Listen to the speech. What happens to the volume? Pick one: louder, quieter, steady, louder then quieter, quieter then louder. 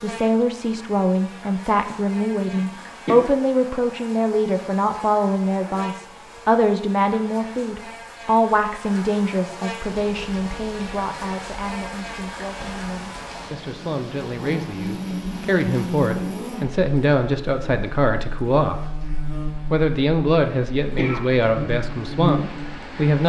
quieter then louder.